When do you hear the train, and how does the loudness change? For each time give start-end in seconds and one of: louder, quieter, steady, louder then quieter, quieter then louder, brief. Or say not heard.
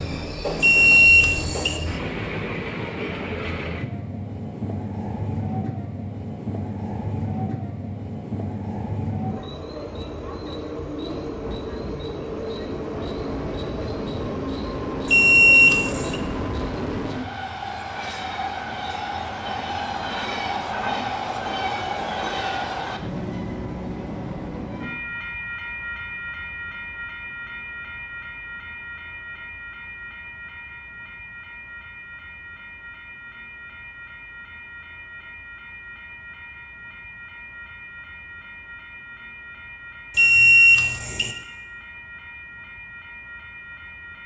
0.0-44.2 quieter.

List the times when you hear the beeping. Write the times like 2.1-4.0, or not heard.
0.6-1.8, 15.1-16.1, 40.1-41.4.